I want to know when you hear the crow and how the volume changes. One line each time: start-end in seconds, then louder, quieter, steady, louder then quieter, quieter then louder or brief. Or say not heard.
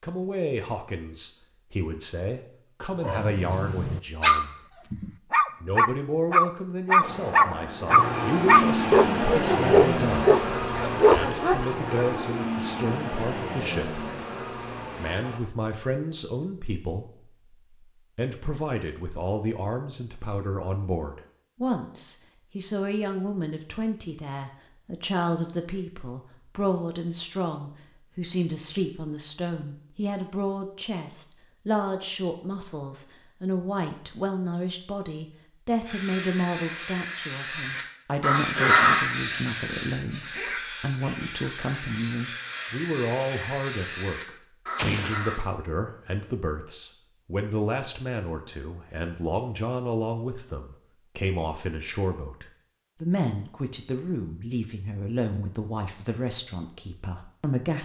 35.9-45.4 louder then quieter.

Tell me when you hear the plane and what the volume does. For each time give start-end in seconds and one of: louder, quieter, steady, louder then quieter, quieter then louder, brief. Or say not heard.
7.0-15.4 quieter.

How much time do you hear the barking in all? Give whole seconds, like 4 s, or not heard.
9 s.